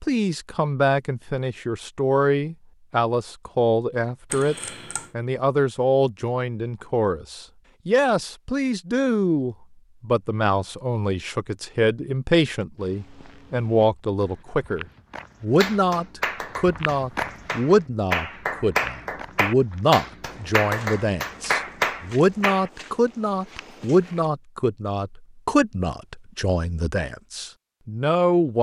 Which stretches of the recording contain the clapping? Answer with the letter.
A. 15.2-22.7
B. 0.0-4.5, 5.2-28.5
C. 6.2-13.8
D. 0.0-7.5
A.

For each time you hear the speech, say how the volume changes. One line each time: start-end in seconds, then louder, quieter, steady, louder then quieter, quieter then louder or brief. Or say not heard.
0.0-4.5 quieter then louder
5.2-28.5 steady.